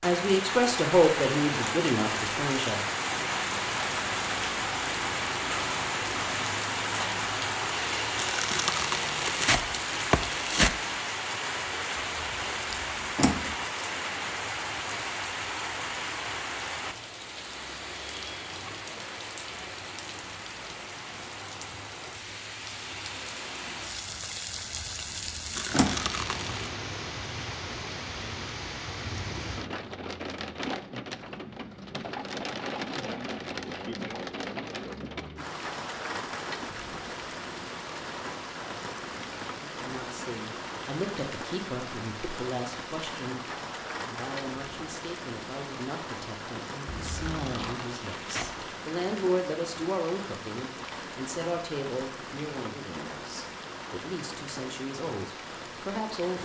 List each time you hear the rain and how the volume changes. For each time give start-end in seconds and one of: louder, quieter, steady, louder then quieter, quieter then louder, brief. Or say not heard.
0.0-56.4 quieter.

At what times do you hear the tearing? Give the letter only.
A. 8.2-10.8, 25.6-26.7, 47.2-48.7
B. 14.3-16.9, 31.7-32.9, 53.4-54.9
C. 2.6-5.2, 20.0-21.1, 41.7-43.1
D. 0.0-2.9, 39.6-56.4
A.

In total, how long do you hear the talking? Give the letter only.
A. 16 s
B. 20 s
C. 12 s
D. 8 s
B.